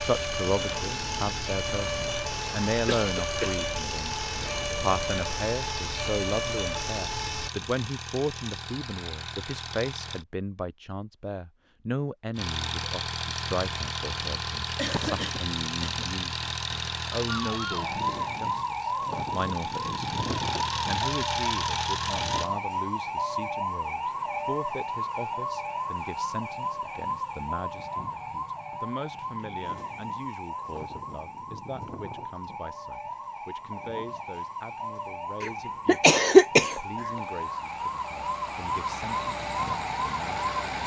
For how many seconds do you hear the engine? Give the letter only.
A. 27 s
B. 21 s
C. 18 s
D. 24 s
D.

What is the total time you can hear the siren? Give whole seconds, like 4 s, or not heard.
31 s.